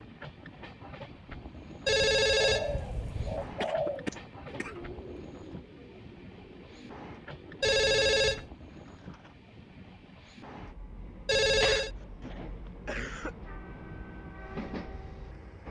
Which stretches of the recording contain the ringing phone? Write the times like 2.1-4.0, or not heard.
1.9-3.5, 7.6-8.5, 11.2-11.9.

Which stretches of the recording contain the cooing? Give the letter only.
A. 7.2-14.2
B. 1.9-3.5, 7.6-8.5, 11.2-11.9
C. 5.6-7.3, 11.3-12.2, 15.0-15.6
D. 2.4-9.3
D.